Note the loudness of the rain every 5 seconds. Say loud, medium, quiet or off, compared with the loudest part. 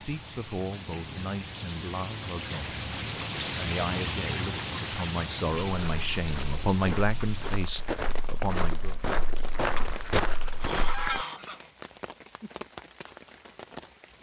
loud, medium, quiet.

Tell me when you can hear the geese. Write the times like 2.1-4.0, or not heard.
9.8-11.7.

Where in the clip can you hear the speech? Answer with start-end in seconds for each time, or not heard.
0.0-2.9, 3.5-8.9.